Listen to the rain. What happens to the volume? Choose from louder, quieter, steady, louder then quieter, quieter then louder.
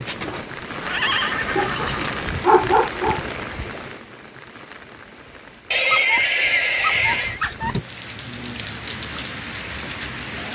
quieter then louder.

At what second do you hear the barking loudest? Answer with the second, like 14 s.
3 s.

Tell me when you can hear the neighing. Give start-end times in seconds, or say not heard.
0.0-2.4, 5.7-7.4.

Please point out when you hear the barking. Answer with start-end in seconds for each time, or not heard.
1.6-3.2, 5.9-7.8.